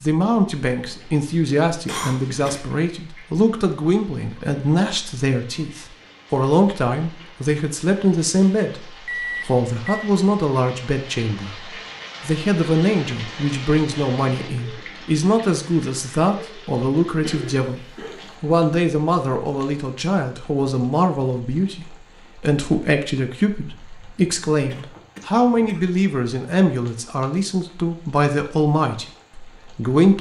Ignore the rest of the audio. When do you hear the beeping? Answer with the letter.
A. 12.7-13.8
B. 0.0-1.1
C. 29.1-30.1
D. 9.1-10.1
D.